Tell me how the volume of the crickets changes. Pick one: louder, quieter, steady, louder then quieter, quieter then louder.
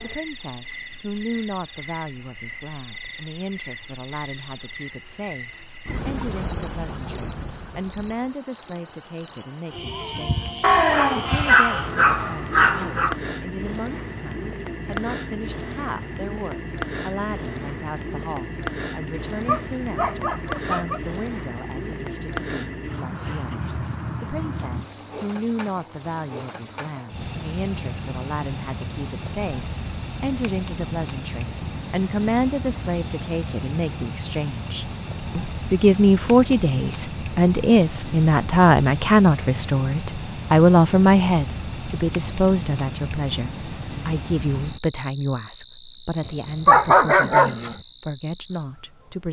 steady.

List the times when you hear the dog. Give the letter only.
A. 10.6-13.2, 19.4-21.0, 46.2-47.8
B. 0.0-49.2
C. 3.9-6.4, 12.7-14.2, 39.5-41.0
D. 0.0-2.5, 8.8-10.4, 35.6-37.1
A.